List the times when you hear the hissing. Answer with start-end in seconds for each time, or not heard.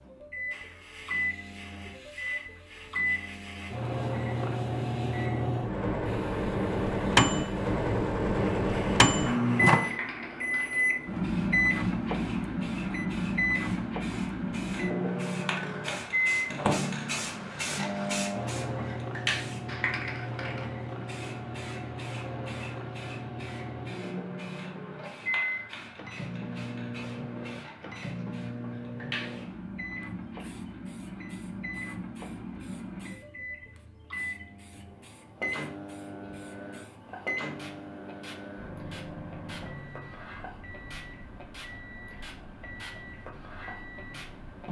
0.0-44.6.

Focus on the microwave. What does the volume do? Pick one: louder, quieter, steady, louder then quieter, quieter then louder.
quieter.